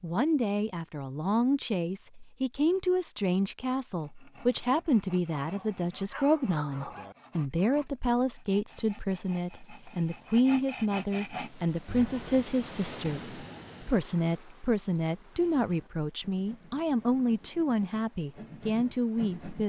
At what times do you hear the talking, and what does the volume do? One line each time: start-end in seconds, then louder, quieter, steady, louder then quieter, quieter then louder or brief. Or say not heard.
0.0-19.6 steady.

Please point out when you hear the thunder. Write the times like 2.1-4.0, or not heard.
not heard.